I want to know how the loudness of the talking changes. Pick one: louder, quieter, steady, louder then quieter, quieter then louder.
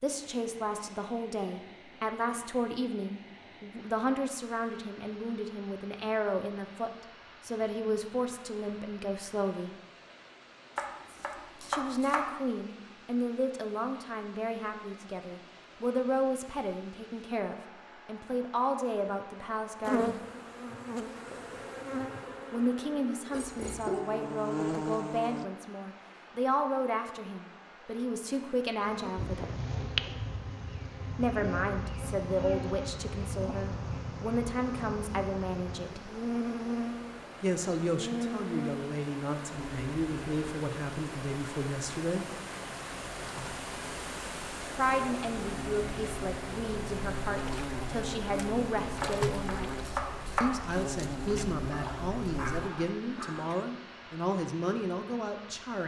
steady.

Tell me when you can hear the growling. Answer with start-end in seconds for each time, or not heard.
23.3-24.1, 51.7-53.5.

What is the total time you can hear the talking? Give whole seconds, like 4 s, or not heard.
46 s.